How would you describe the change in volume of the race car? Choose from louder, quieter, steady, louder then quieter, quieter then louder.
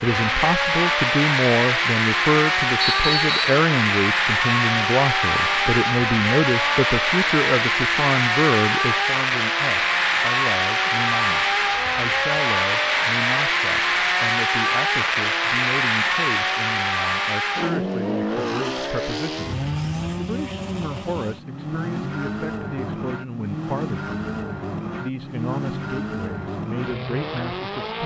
quieter.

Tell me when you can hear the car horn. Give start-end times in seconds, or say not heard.
not heard.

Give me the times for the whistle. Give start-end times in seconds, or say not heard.
2.8-3.6.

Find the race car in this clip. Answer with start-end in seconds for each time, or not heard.
0.0-28.0.